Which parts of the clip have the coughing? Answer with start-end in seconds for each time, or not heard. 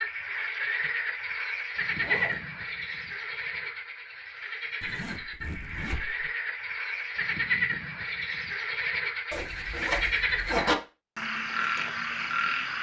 not heard.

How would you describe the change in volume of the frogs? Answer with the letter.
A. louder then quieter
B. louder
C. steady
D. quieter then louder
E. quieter
D.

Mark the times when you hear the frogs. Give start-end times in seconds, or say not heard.
0.0-12.7.